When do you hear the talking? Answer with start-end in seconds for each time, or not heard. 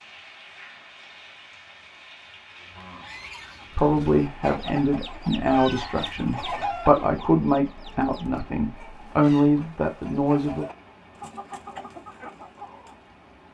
3.8-10.7.